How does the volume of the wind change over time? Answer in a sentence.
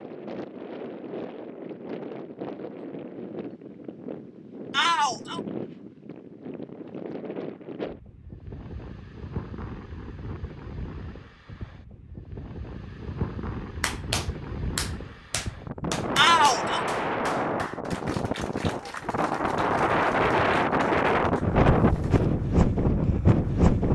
The volume of the wind goes up.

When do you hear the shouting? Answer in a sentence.
You can hear the shouting from 4.7 to 5.4 s and from 16.1 to 16.9 s.